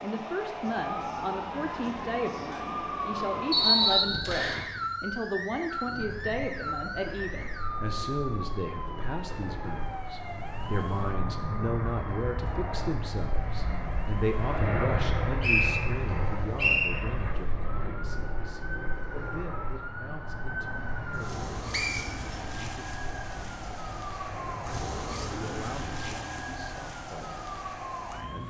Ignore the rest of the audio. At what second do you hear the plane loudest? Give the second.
15 s.